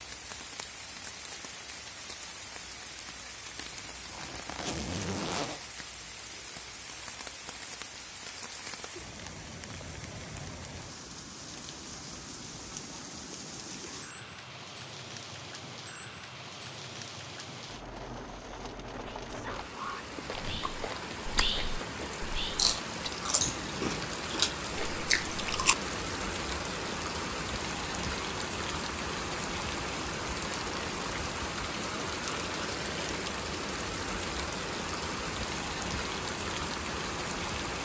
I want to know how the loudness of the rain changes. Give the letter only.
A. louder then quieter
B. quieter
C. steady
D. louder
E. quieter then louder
D.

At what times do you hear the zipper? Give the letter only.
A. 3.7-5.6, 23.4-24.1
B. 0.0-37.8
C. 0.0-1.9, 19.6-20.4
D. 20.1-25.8
A.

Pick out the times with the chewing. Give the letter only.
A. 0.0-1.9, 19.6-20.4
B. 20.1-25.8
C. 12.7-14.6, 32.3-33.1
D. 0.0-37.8
B.